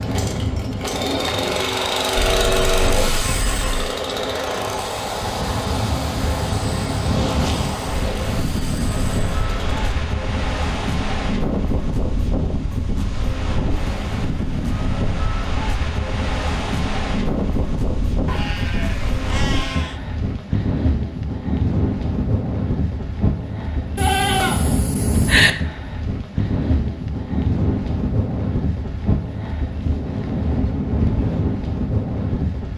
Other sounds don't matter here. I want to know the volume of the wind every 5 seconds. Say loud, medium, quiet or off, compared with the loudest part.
medium, loud, loud, loud, loud, loud, loud.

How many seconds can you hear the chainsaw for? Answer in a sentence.
You can hear the chainsaw for 10 seconds altogether.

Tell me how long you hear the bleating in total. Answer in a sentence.
The bleating can be heard for 5 seconds in total.